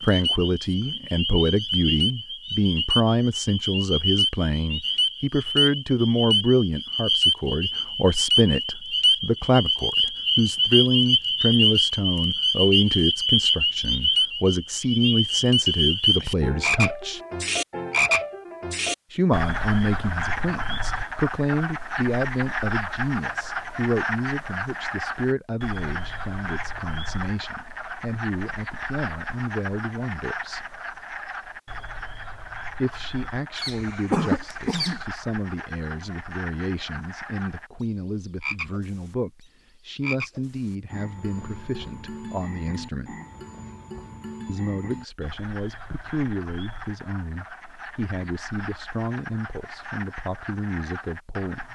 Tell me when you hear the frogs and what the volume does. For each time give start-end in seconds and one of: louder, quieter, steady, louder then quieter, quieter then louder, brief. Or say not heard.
0.0-51.7 quieter.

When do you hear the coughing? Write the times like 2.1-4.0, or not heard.
33.5-35.0.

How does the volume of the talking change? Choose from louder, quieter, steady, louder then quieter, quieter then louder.
quieter.